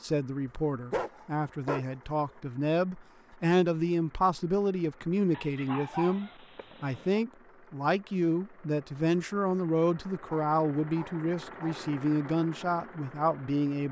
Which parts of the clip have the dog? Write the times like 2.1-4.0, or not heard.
0.9-1.9, 5.3-7.2, 10.2-11.8.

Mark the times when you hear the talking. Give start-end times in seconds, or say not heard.
0.0-13.8.